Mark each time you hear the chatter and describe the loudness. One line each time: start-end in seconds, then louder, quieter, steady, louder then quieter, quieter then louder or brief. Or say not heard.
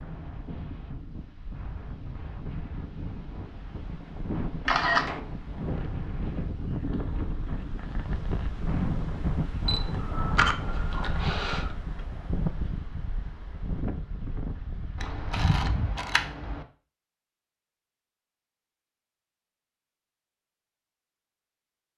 not heard.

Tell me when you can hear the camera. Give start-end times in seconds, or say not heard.
4.7-5.2, 9.7-11.7, 15.0-16.6.